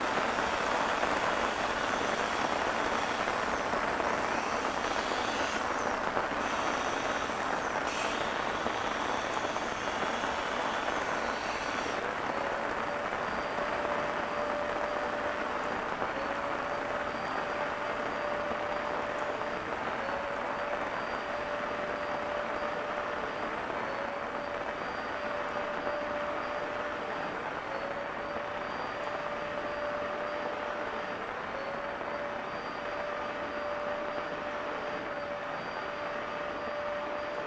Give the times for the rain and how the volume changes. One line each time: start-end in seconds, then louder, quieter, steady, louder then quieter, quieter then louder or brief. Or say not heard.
0.0-37.4 quieter.